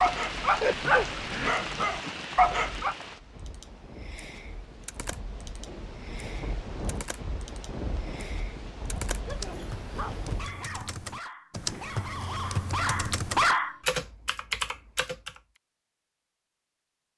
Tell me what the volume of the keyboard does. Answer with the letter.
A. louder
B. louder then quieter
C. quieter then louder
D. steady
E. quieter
A.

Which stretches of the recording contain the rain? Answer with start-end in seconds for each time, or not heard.
0.0-10.6.